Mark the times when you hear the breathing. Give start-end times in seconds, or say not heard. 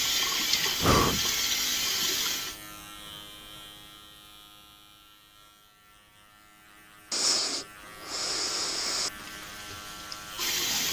0.8-1.2, 7.1-9.1.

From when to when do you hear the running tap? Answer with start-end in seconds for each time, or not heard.
0.0-2.6, 9.1-10.8.